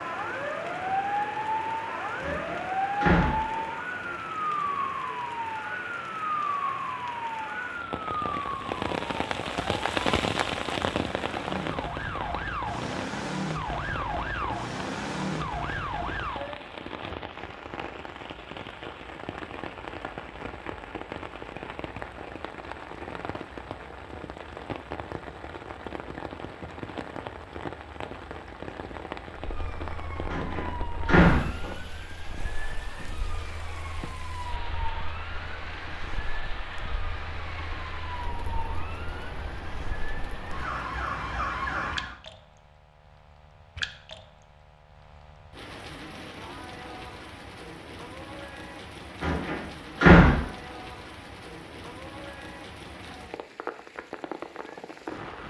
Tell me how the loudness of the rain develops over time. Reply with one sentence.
The loudness of the rain goes down.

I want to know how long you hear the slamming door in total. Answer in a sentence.
The slamming door can be heard for 4 seconds in total.